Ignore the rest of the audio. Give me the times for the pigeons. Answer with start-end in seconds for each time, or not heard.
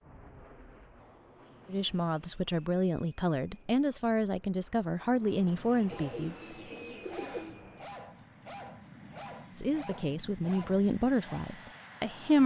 5.8-7.6.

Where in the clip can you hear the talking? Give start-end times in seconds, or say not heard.
1.7-6.3, 9.6-12.4.